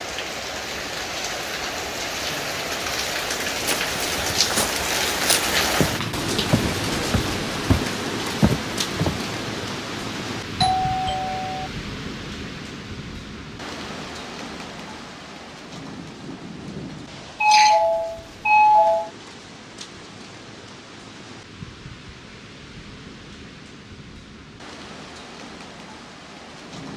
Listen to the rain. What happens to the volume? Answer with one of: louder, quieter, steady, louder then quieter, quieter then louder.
quieter.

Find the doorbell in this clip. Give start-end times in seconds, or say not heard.
10.6-11.7, 17.4-19.1.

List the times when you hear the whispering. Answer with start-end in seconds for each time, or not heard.
not heard.